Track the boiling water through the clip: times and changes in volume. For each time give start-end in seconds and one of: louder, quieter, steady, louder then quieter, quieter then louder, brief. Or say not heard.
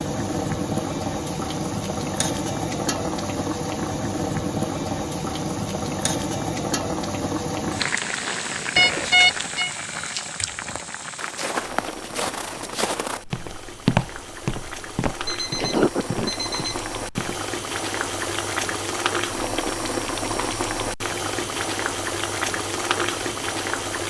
0.0-24.0 quieter then louder.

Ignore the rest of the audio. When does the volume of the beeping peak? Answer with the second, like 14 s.
9 s.